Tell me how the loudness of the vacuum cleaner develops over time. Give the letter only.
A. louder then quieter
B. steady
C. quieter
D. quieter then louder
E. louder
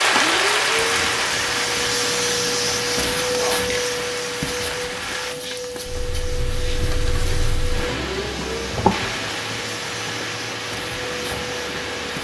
C.